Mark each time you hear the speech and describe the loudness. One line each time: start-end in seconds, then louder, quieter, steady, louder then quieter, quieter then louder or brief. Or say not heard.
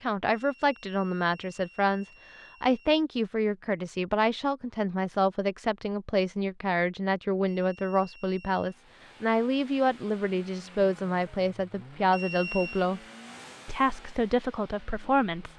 0.0-13.0 steady
13.7-15.5 brief.